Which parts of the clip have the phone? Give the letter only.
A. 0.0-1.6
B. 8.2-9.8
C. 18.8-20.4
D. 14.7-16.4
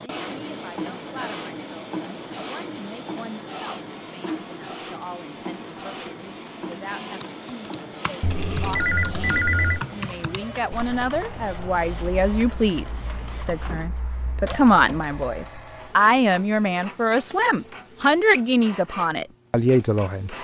B.